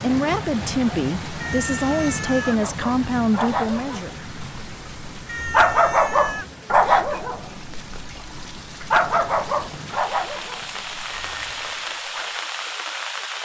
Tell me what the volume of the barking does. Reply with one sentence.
The loudness of the barking goes up, then down.